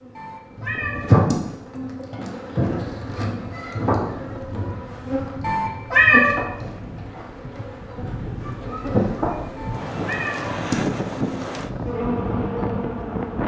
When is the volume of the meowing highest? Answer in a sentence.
The volume of the meowing peaks at 6 seconds.